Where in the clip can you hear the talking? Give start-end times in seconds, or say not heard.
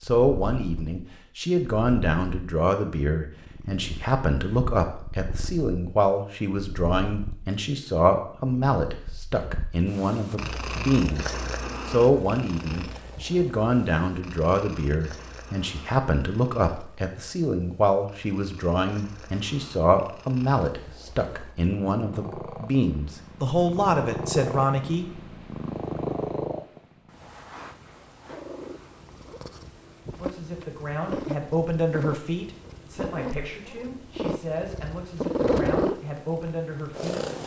0.0-11.2, 11.8-25.1, 30.1-37.2.